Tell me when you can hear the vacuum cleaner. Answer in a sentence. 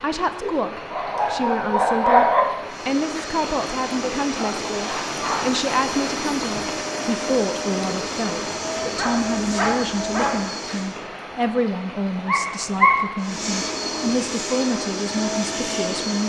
The vacuum cleaner can be heard from 2.6 to 11.1 s and from 13.2 to 16.2 s.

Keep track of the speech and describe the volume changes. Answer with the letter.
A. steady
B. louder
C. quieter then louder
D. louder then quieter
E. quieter
A.